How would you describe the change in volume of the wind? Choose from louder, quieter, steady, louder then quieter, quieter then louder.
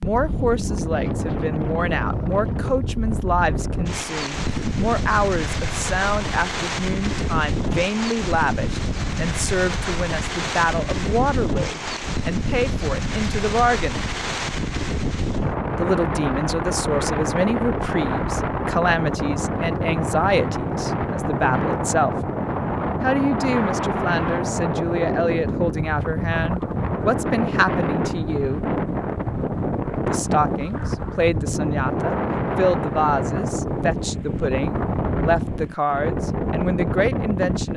steady.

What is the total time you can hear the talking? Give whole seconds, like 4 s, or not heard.
34 s.